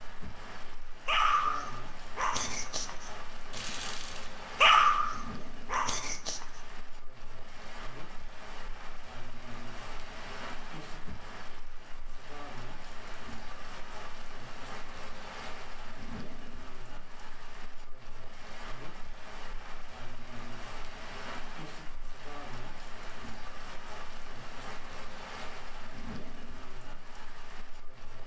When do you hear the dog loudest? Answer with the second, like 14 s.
5 s.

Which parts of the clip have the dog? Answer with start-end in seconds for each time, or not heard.
1.1-6.5.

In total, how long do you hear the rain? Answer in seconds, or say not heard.
28 s.